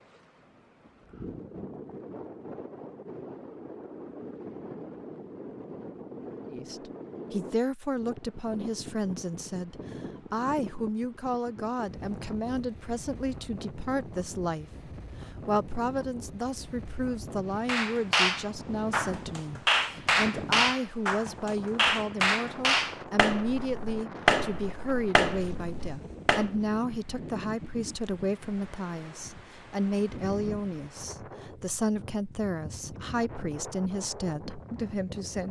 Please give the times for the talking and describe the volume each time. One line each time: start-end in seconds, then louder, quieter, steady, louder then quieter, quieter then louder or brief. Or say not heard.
6.5-35.4 steady.